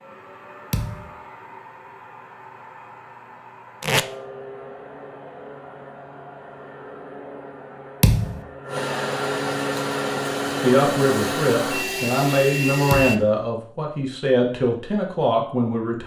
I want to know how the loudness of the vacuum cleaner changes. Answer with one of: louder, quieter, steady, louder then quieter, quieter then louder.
louder.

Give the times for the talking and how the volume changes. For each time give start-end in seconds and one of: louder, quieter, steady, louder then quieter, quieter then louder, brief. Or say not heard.
10.6-16.0 steady.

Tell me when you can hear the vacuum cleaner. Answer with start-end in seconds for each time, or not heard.
0.0-13.2.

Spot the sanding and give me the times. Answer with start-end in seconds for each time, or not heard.
not heard.